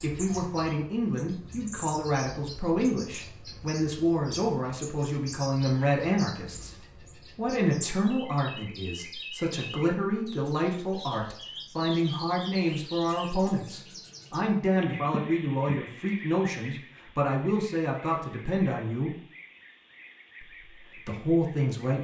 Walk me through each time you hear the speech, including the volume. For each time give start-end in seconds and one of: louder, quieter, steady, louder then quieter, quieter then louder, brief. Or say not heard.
0.0-19.1 steady
20.4-21.9 brief.